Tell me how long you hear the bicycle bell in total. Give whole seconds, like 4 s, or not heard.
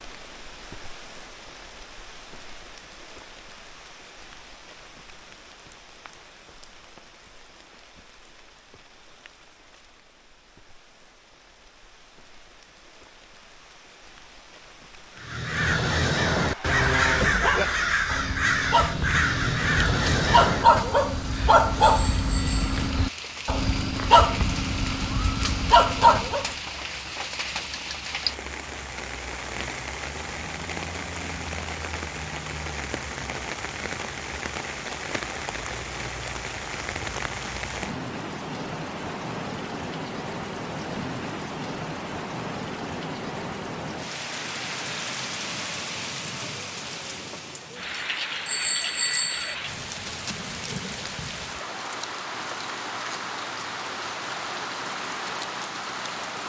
2 s.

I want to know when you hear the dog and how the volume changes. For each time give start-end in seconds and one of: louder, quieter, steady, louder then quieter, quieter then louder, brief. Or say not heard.
16.4-26.5 louder.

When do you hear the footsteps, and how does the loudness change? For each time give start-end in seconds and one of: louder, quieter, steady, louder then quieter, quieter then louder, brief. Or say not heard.
not heard.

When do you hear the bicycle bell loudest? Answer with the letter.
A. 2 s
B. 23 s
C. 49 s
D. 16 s
C.